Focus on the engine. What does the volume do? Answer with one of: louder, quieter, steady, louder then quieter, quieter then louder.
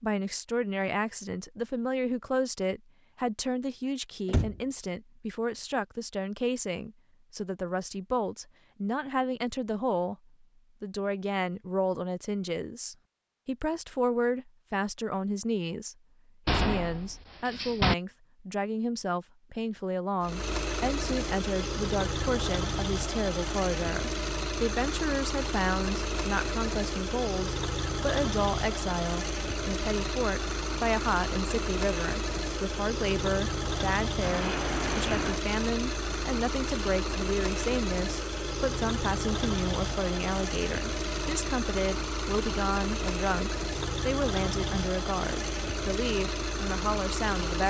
steady.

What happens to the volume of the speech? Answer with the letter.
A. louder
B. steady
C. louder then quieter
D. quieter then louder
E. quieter
B.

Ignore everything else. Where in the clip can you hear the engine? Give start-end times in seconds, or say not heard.
20.2-47.6.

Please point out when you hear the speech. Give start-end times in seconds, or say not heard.
0.0-47.6.